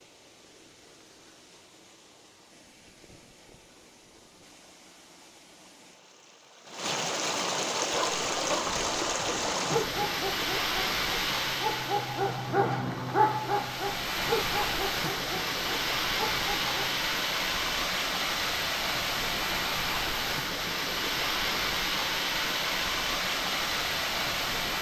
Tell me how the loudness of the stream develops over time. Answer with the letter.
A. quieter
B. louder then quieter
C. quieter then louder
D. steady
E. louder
E.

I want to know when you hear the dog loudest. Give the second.
13 s.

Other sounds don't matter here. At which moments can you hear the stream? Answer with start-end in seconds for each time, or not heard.
0.0-24.7.